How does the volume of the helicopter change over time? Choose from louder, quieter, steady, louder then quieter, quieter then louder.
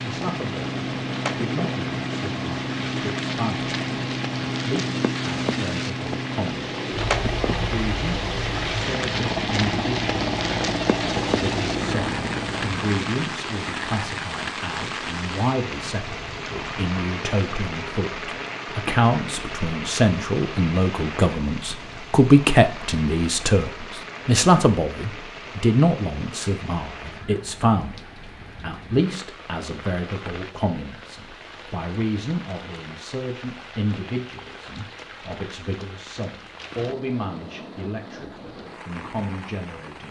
steady.